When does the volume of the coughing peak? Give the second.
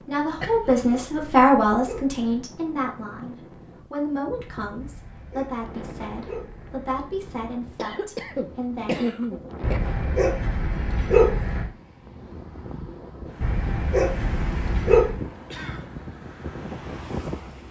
9 s.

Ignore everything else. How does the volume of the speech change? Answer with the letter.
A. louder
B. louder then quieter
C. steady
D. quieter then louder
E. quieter
E.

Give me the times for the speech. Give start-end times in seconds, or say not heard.
0.0-9.5.